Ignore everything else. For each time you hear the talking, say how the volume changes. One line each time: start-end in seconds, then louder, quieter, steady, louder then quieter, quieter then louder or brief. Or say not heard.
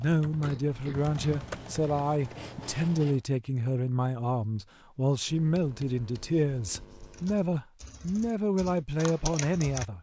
0.0-9.9 steady.